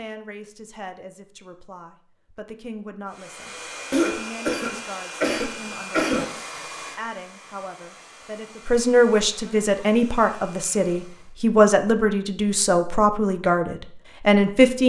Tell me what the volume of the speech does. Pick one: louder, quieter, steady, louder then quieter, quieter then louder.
louder.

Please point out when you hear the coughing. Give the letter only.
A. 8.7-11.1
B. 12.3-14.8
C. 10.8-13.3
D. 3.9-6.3
D.